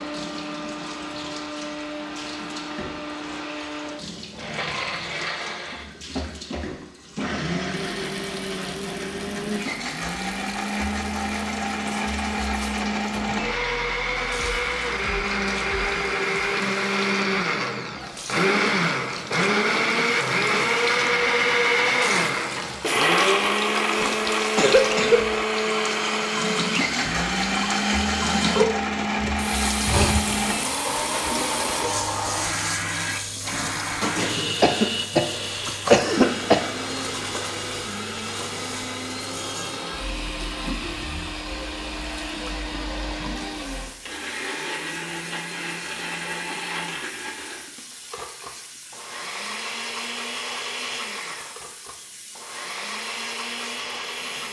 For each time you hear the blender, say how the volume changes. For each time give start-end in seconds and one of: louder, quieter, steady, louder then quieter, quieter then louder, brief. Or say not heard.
0.0-54.4 louder then quieter.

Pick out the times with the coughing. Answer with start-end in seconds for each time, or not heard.
24.0-25.2, 34.6-36.6.